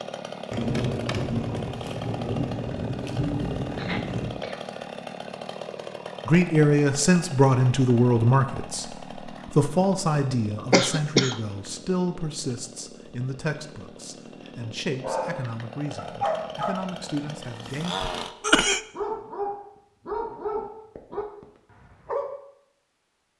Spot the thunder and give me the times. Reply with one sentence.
You can hear the thunder from 0.5 to 4.5 s.